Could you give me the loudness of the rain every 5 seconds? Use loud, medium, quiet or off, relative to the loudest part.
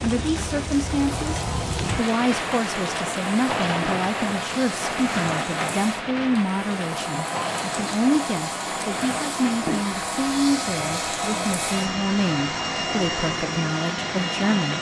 loud, loud, medium.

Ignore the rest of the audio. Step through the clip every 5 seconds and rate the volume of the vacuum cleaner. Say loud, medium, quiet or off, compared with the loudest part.
medium, loud, loud.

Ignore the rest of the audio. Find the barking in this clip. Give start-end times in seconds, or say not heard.
not heard.